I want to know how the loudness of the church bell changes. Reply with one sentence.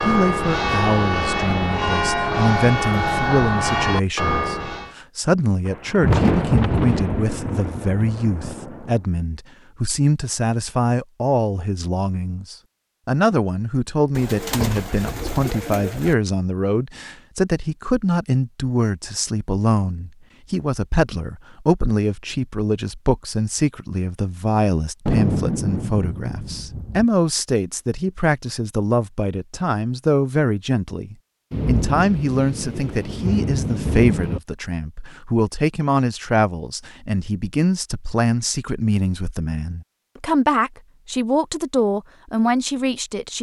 The volume of the church bell stays about the same.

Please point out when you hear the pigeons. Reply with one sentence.
You can hear the pigeons from 14.2 to 16.1 s.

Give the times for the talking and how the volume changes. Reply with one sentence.
The talking can be heard from 0.0 to 43.3 s, at a steady volume.